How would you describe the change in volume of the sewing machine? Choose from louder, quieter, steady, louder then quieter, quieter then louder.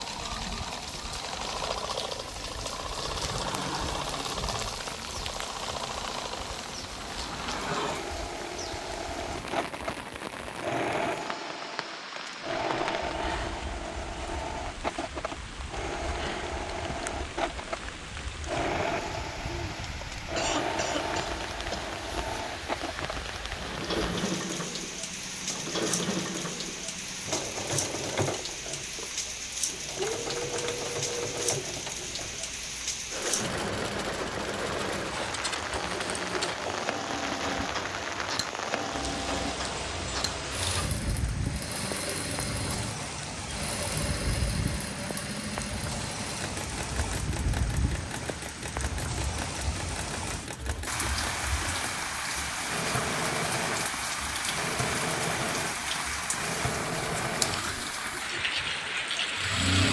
steady.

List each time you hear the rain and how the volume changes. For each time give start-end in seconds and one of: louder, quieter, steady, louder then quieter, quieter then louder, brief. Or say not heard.
0.0-59.8 louder.